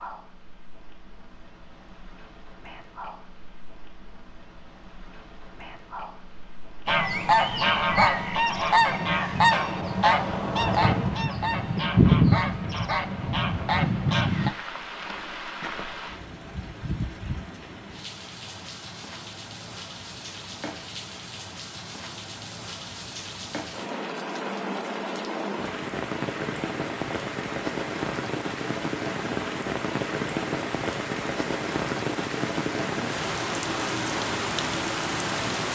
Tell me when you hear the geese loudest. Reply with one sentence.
The loudest moment of the geese is at 12 seconds.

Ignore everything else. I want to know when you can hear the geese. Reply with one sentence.
The geese can be heard from 6.8 to 14.5 s.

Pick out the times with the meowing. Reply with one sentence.
The meowing can be heard from 9.1 to 11.2 s.